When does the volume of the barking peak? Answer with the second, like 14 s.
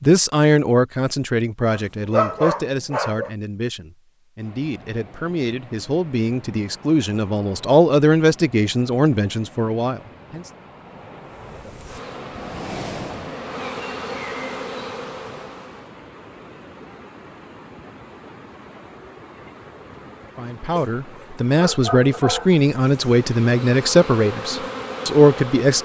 2 s.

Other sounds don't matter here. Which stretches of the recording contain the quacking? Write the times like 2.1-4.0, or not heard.
not heard.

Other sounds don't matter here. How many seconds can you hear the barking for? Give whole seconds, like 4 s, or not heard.
3 s.